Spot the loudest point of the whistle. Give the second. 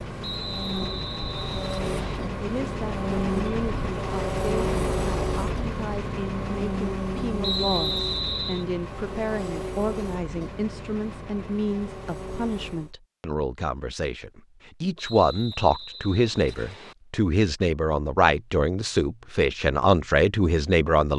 8 s.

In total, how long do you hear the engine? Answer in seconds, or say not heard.
13 s.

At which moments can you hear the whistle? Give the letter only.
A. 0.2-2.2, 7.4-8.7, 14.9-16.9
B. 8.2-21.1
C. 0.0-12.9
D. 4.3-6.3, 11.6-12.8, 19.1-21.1
A.